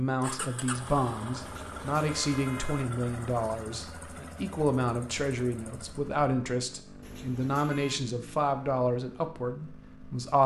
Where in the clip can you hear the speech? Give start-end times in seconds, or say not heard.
0.0-10.4.